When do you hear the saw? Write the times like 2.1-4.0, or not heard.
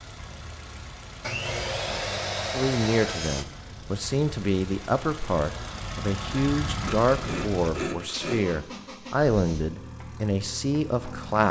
1.2-3.5, 6.8-8.4.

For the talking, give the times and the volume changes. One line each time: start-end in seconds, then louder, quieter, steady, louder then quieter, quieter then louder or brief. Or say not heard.
2.5-11.4 steady.